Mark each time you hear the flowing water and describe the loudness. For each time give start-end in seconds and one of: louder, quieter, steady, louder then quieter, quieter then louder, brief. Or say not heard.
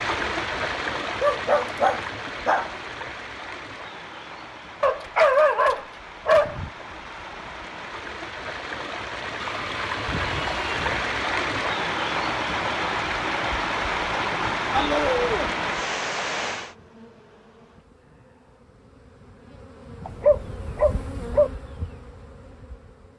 0.0-16.8 quieter then louder.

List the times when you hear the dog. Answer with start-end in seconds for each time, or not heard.
1.2-2.7, 4.8-6.7, 9.4-11.1, 14.7-15.6, 20.1-21.5.